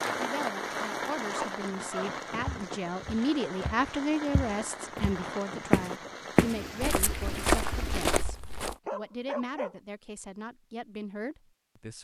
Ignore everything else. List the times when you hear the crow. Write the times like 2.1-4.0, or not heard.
not heard.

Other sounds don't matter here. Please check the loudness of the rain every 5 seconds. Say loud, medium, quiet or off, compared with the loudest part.
loud, loud, off.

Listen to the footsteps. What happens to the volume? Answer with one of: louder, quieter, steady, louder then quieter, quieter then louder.
louder.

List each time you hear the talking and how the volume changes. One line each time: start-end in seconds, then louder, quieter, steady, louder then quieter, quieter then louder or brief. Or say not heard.
0.1-11.9 louder then quieter.